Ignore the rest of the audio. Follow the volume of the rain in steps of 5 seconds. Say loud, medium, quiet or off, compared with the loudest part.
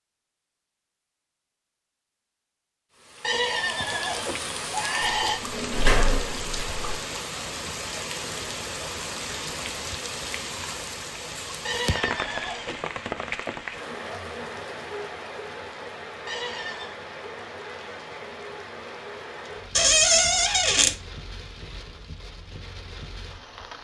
loud, loud, loud, medium, medium.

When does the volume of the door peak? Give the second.
20 s.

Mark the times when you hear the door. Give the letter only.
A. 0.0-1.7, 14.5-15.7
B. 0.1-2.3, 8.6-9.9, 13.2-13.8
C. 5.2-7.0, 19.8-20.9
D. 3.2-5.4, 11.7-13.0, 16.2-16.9
C.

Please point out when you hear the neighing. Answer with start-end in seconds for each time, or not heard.
3.2-5.4, 11.7-13.0, 16.2-16.9.